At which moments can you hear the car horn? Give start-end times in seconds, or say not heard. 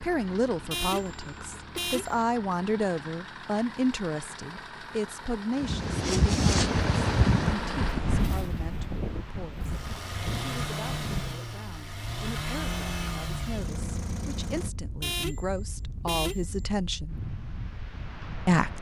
0.7-2.2, 15.0-16.6.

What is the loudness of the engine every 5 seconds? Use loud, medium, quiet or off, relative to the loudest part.
medium, loud, loud, off.